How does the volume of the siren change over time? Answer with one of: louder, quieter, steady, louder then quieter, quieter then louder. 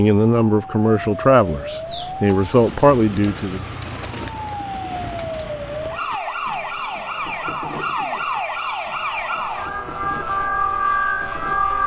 louder.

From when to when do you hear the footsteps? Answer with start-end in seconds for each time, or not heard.
not heard.